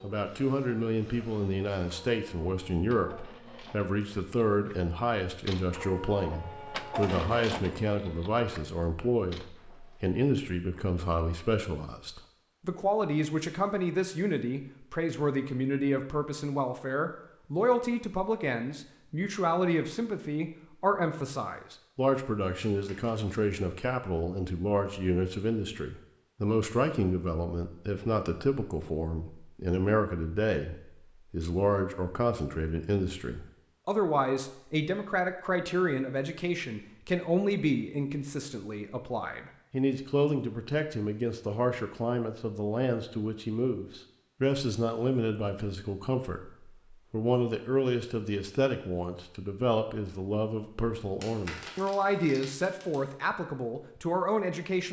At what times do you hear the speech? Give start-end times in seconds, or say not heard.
0.0-54.8.